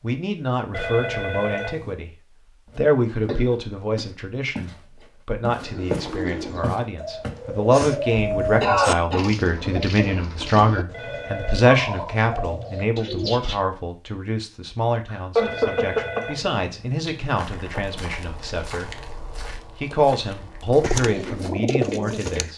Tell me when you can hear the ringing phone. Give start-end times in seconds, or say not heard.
0.7-1.9, 10.9-11.8, 15.3-17.4.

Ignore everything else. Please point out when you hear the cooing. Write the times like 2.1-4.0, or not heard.
5.5-13.7, 20.8-22.5.